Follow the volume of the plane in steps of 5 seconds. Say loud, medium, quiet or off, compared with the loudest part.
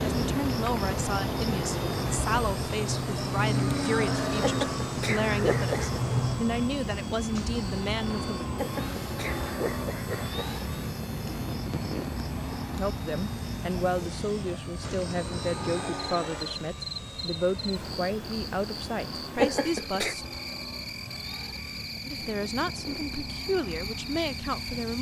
loud, loud, loud, medium, medium.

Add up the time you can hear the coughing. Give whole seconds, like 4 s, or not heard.
4 s.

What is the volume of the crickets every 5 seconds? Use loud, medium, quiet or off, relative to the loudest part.
loud, loud, medium, medium, medium.